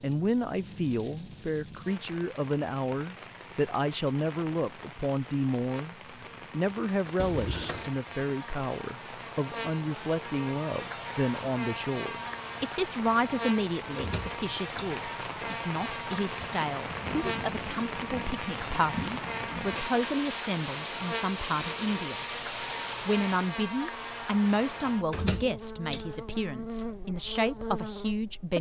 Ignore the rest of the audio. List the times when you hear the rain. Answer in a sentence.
The rain can be heard from 0.0 to 23.6 s.